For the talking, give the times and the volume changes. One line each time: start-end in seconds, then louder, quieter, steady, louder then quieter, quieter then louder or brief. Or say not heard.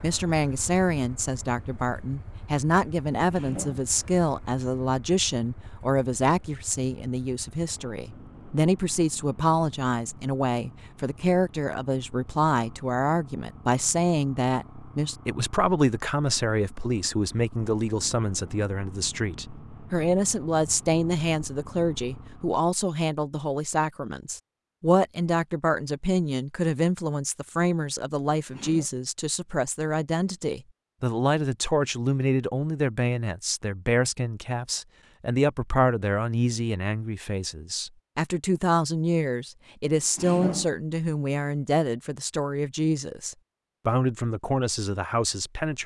0.0-45.8 steady.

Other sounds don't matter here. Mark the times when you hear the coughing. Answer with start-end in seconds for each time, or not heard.
3.3-4.0, 28.4-28.9, 40.0-40.6.